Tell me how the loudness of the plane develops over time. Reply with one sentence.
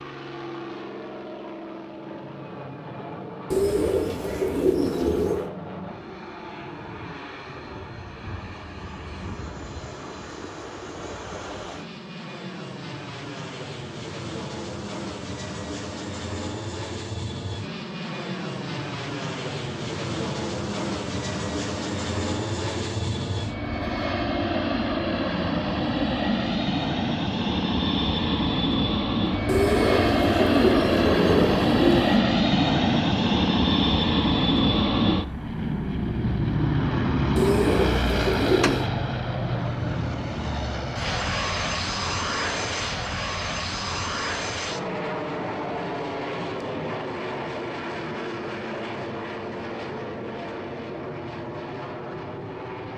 The volume of the plane goes up, then down.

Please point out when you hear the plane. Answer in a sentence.
The plane can be heard from 0.0 to 52.9 s.